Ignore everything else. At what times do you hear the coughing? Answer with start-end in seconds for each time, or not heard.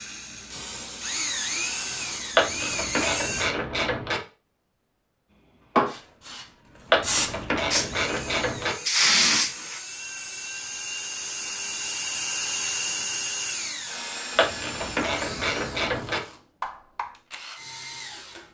not heard.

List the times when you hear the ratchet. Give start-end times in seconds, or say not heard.
2.4-4.2, 6.9-8.8, 14.3-16.2.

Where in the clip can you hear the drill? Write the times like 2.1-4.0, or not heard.
0.0-3.5, 7.7-18.4.